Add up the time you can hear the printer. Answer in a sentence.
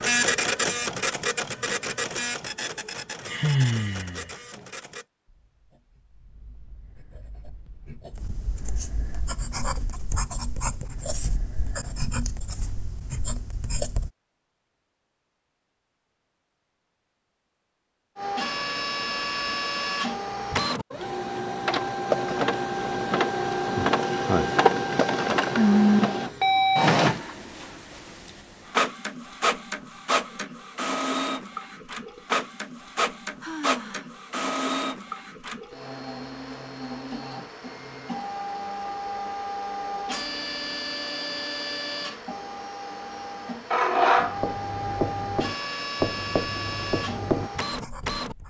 You can hear the printer for 35 seconds altogether.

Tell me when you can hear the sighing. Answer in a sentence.
The sighing can be heard from 3.2 to 4.2 s, from 25.6 to 26.2 s and from 33.4 to 34.0 s.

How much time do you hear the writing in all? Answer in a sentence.
The writing can be heard for 13 seconds in total.